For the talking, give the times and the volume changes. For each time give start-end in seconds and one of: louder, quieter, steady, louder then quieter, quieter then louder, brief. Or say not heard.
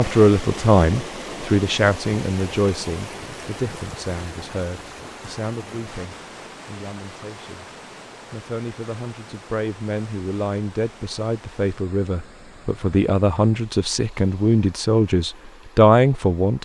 0.0-7.7 quieter
8.3-16.6 louder.